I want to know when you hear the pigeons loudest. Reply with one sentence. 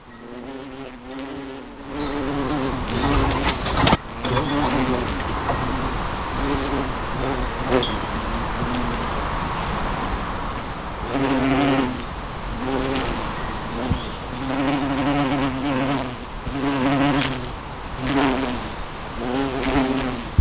The volume of the pigeons peaks at 4 seconds.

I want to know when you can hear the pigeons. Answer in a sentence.
The pigeons can be heard from 2.9 to 5.8 s.